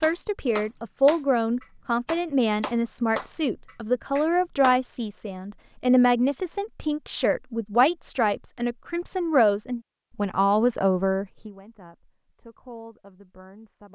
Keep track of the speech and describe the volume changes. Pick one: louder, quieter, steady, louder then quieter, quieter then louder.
quieter.